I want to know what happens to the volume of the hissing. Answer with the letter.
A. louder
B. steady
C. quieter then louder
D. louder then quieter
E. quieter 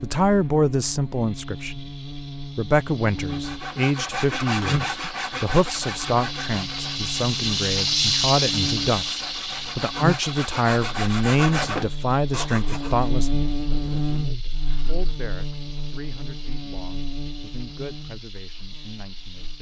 D.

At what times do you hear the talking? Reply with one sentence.
You can hear the talking from 0.0 to 1.8 s and from 2.5 to 19.5 s.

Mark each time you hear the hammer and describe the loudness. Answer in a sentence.
The hammer can't be heard in this clip.